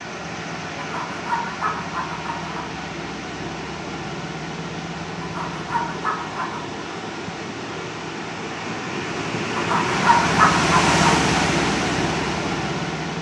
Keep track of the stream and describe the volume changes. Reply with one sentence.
The volume of the stream goes up.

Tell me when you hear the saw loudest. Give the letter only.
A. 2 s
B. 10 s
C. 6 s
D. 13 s
B.